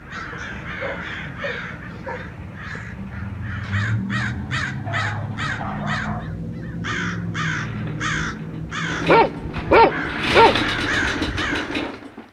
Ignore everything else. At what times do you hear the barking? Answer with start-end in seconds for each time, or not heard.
0.3-2.3, 4.8-6.3, 9.1-10.7.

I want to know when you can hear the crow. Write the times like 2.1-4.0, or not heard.
0.0-11.9.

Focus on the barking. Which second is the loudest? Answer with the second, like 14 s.
10 s.